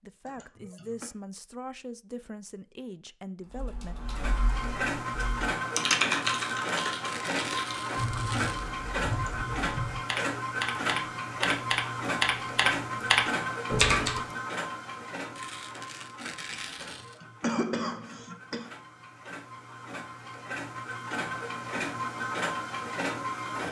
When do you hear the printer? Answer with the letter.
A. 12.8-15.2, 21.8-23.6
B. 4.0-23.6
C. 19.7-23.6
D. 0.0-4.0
B.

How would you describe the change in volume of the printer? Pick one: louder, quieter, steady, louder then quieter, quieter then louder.
quieter then louder.